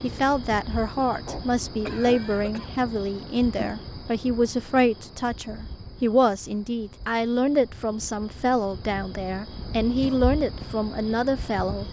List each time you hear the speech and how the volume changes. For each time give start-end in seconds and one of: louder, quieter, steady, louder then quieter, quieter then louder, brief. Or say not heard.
0.0-11.8 steady.